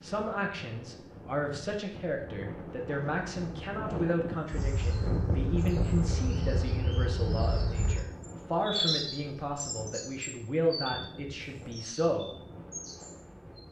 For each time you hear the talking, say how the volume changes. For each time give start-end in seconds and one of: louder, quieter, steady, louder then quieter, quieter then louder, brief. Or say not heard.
0.0-12.3 steady.